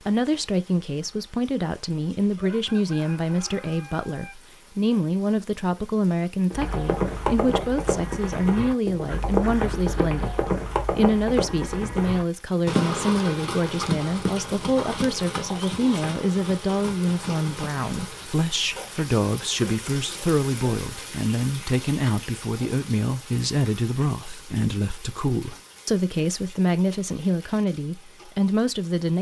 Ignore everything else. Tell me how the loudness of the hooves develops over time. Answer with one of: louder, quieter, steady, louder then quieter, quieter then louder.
quieter.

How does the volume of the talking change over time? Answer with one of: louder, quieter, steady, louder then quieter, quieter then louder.
steady.